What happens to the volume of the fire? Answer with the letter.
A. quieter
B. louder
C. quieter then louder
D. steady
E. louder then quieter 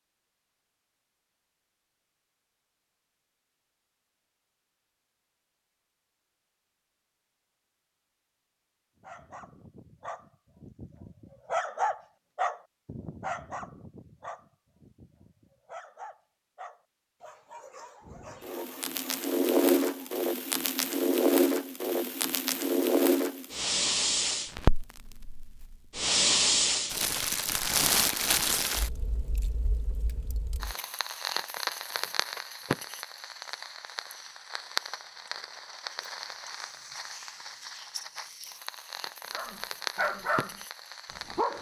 A.